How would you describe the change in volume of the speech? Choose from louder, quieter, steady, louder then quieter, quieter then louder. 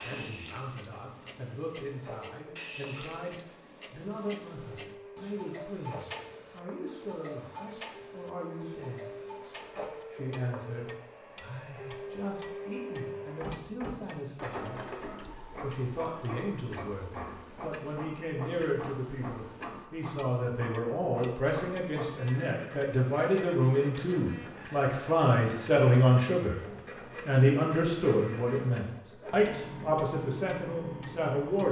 louder.